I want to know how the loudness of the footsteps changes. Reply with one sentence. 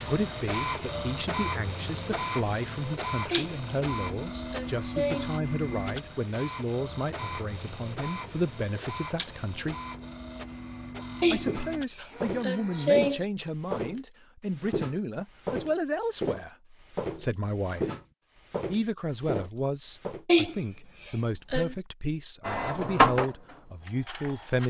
The volume of the footsteps stays about the same.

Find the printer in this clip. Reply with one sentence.
The printer can be heard from 0.0 to 12.9 s and from 22.4 to 24.6 s.